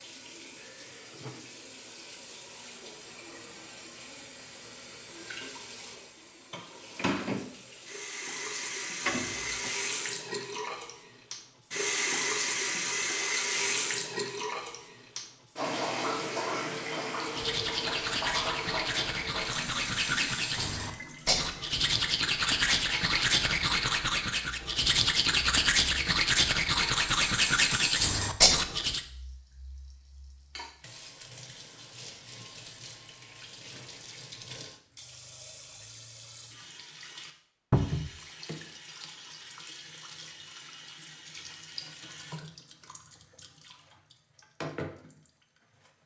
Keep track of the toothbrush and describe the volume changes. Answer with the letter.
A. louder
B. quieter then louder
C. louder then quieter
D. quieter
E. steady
A.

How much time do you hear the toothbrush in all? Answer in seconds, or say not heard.
12 s.